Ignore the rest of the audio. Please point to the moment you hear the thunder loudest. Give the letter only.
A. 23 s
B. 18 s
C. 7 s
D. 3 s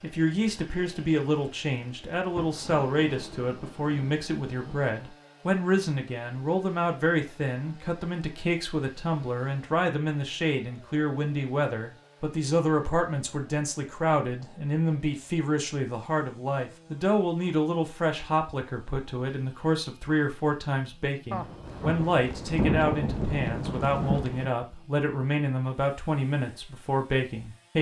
A.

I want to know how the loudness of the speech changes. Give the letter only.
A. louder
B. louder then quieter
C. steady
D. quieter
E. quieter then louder
C.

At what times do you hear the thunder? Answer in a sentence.
You can hear the thunder from 2.4 to 5.0 s and from 21.3 to 24.5 s.